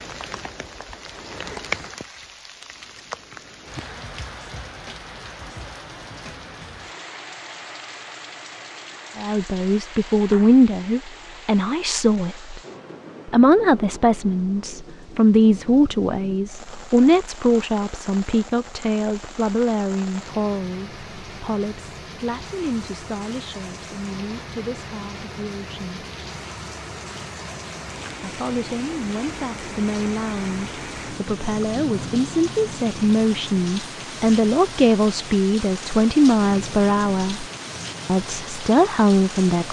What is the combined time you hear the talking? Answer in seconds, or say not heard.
27 s.